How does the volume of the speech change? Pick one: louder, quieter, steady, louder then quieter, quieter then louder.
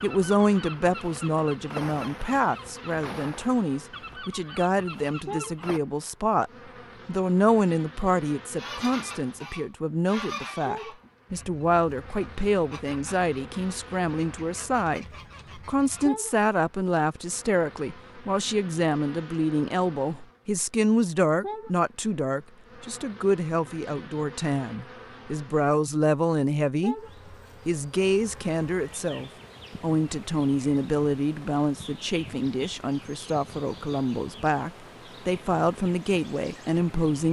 steady.